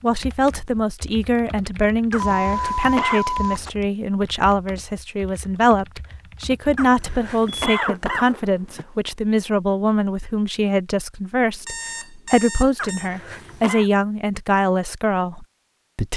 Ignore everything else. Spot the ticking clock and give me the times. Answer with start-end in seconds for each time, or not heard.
not heard.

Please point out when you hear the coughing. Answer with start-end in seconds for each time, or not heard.
2.1-3.2, 6.8-8.3, 12.8-13.9.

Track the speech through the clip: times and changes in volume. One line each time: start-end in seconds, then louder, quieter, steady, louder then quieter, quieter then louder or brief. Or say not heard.
0.0-16.1 steady.